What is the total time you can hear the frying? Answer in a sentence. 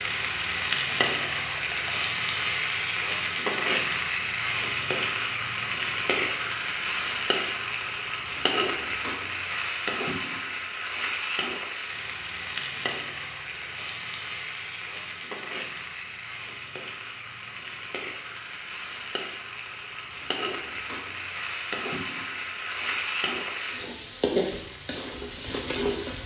You can hear the frying for 26 seconds altogether.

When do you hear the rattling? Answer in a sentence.
You can hear the rattling from 1.0 to 2.1 s.